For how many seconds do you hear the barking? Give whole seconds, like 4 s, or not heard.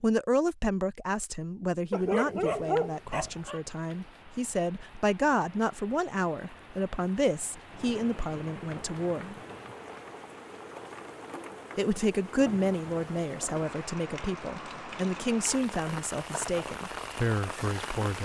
2 s.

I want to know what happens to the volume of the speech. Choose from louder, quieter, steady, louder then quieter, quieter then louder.
steady.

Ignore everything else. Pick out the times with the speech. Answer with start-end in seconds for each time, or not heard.
0.0-9.3, 11.8-18.2.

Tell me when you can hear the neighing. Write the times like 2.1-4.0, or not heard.
not heard.